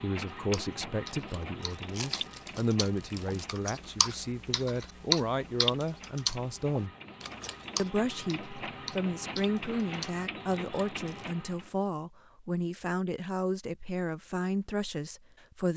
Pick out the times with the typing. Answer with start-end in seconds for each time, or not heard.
0.2-10.2.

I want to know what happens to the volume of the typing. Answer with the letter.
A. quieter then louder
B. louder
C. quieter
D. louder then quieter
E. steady
D.